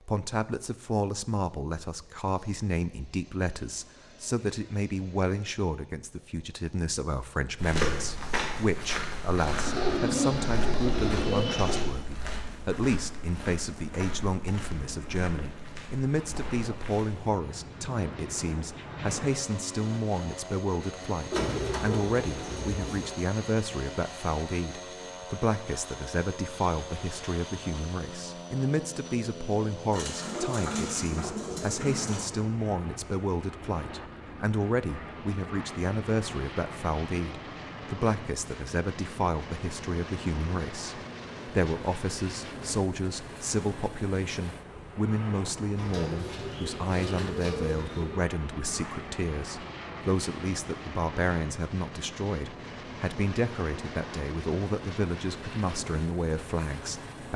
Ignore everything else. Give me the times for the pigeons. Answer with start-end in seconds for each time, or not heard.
9.3-11.9, 21.3-23.1, 29.9-32.3, 45.8-48.2.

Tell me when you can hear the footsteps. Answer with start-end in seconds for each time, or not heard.
7.5-17.4.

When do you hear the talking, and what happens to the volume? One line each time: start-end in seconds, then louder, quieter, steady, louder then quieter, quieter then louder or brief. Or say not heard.
0.1-57.3 steady.